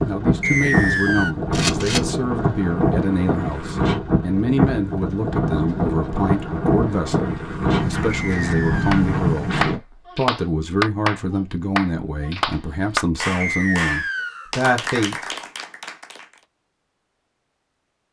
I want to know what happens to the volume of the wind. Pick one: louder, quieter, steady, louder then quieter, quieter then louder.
steady.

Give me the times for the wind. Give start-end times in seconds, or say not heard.
0.0-9.8.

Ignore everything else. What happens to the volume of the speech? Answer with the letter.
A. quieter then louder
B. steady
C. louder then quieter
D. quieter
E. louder
B.